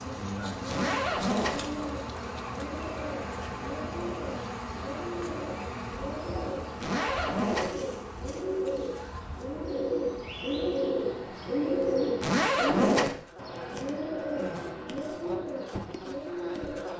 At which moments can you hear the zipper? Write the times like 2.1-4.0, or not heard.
0.7-1.6, 6.8-7.7, 12.2-13.2.